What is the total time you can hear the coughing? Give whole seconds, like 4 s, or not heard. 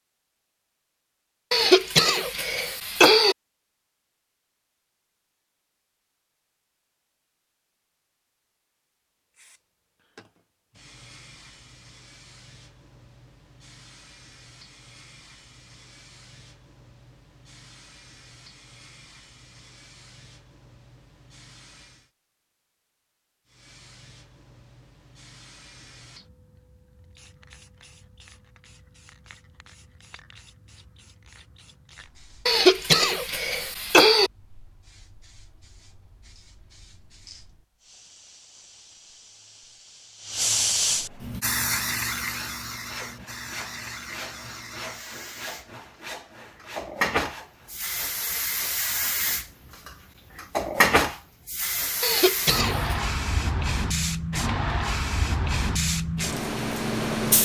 5 s.